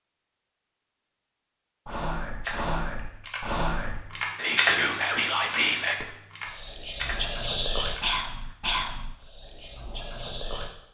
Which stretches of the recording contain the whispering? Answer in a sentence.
The whispering can be heard from 1.9 to 10.7 s.